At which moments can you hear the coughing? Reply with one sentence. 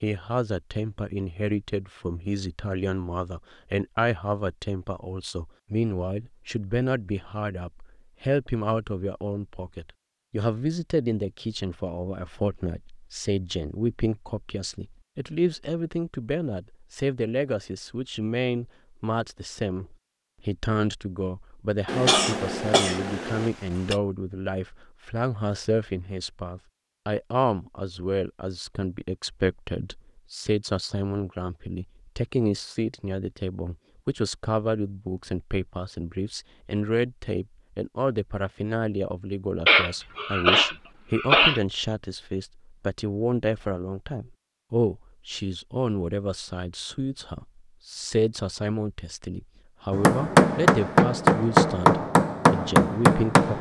You can hear the coughing from 21.9 to 23.9 s and from 39.6 to 41.6 s.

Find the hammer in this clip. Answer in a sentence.
You can hear the hammer from 49.9 to 53.5 s.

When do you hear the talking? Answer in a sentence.
You can hear the talking from 0.0 to 53.5 s.